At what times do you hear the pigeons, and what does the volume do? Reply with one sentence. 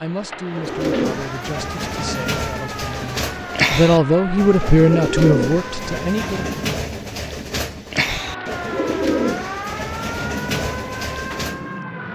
The pigeons can be heard from 0.5 to 11.7 s, at a steady volume.